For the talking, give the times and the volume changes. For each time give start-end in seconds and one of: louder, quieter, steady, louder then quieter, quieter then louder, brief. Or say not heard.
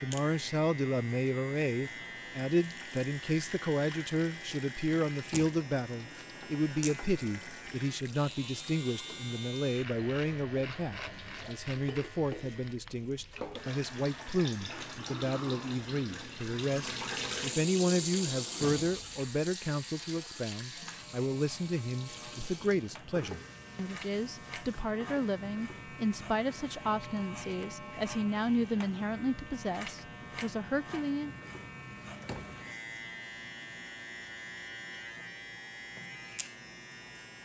0.0-31.3 steady.